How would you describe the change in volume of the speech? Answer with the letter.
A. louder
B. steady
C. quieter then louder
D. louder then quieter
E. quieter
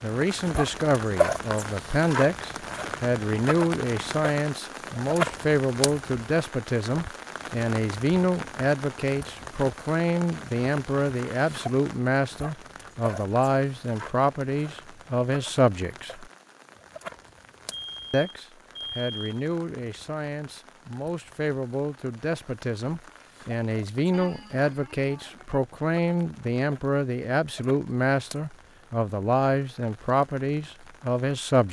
B.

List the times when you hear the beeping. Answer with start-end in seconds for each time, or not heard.
17.7-19.4.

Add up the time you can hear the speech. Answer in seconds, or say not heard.
30 s.